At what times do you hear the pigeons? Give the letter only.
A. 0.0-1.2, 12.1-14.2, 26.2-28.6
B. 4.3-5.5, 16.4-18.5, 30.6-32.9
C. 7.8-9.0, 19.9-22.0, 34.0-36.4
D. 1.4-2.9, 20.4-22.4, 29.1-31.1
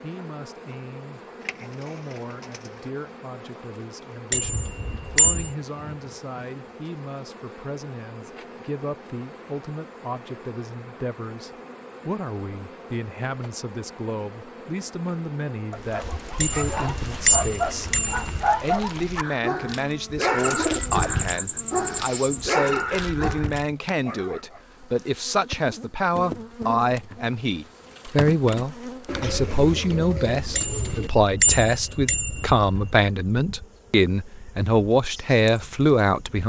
D.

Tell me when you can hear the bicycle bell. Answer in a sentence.
The bicycle bell can be heard from 4.3 to 5.5 s, from 16.4 to 18.5 s and from 30.6 to 32.9 s.